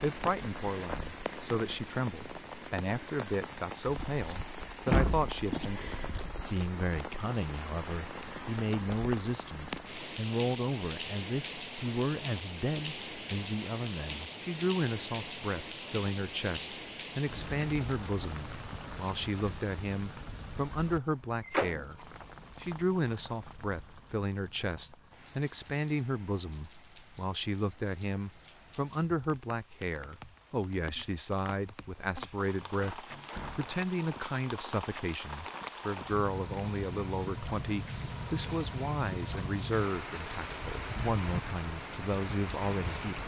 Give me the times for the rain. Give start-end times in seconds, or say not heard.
0.0-43.2.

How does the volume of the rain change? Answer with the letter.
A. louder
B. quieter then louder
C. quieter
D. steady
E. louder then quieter
B.